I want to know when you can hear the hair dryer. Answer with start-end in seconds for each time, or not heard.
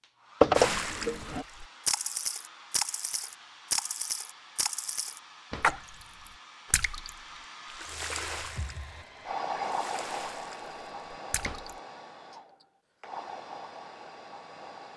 0.0-14.9.